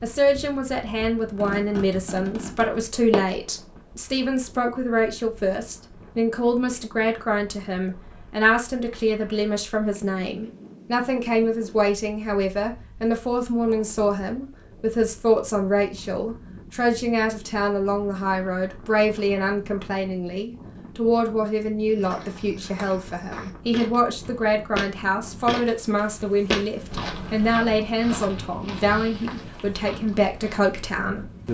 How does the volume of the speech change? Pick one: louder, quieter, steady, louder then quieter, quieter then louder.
steady.